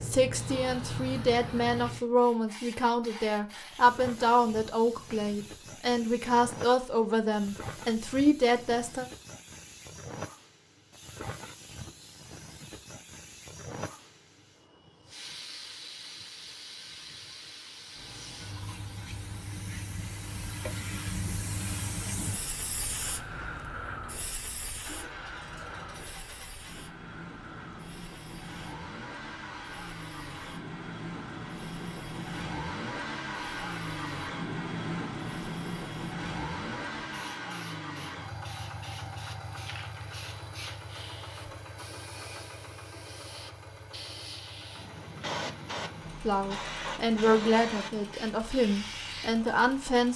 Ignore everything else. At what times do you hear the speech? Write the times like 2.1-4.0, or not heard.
0.0-9.1, 46.2-50.1.